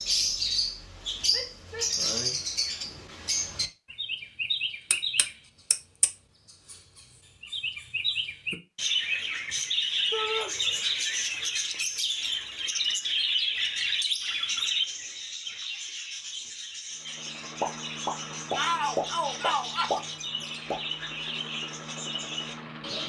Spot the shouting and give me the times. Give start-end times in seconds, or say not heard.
1.3-1.9, 10.1-10.5, 18.6-20.0.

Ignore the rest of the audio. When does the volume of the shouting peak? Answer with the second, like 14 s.
19 s.